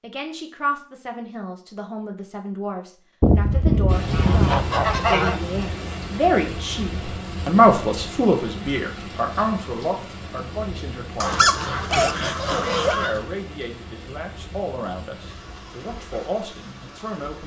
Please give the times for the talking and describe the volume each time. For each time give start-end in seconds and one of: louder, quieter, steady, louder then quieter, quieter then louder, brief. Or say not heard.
0.0-17.4 louder then quieter.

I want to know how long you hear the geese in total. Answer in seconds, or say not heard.
4 s.